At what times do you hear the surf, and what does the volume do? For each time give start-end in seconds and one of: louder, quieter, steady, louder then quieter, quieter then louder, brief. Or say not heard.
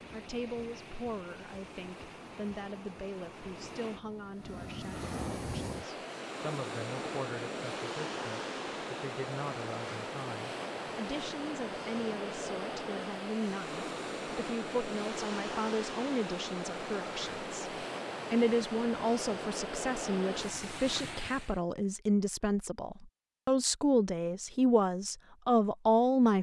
0.0-21.6 louder.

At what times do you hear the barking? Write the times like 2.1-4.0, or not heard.
not heard.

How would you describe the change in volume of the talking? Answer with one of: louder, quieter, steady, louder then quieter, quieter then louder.
louder.